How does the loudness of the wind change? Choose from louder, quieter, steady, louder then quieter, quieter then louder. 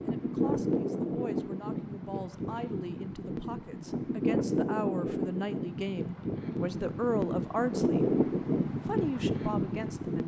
quieter then louder.